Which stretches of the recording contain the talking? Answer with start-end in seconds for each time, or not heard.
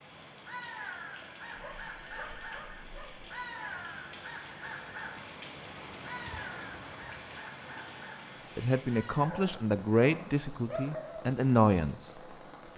8.6-12.0.